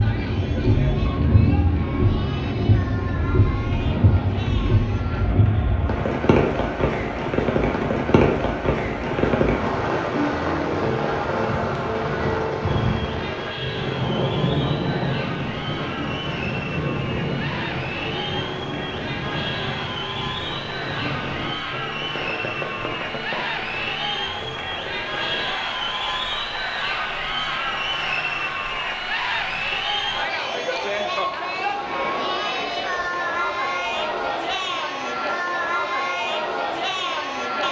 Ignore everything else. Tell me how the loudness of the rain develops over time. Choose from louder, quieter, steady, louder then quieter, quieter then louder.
quieter.